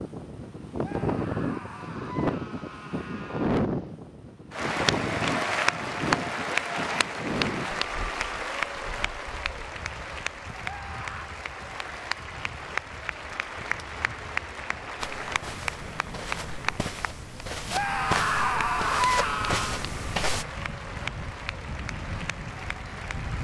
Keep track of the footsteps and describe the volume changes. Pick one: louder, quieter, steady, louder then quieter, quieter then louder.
louder.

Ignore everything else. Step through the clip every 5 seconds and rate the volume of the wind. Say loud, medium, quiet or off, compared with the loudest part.
loud, medium, quiet, quiet, medium.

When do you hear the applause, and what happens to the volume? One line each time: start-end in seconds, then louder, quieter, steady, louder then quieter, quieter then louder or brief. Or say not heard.
4.5-23.4 quieter.